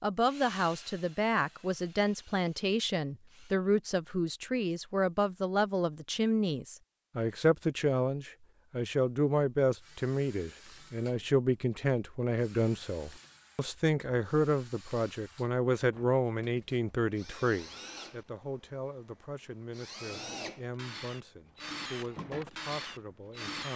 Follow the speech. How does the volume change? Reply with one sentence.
The volume of the speech goes down.